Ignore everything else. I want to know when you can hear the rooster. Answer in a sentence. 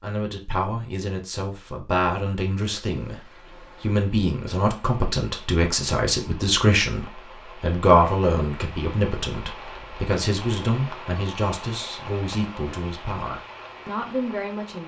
You can't hear the rooster here.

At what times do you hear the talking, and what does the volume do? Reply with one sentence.
The talking can be heard from 0.0 to 14.8 s, getting louder then quieter.